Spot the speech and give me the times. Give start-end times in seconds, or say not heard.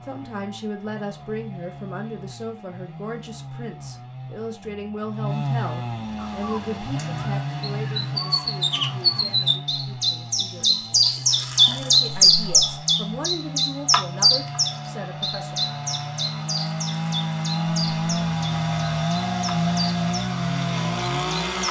0.0-15.6.